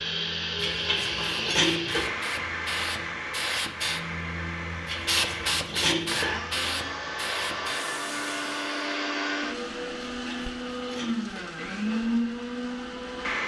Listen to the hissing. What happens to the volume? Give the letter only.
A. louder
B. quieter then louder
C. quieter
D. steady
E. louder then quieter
E.